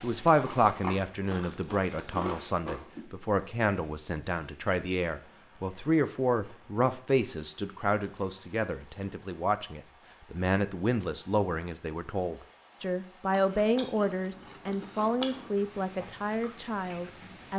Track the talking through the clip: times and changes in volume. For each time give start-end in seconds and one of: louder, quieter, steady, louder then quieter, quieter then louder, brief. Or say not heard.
0.0-17.5 steady.